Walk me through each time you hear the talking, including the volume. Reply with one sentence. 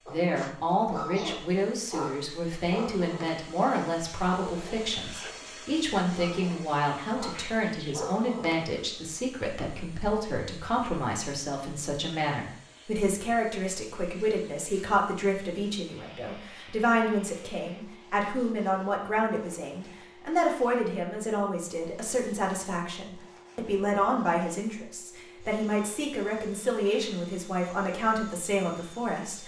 The talking can be heard from 0.1 to 29.4 s, at a steady volume.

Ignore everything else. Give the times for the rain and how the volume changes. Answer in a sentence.
The rain can't be heard in this clip.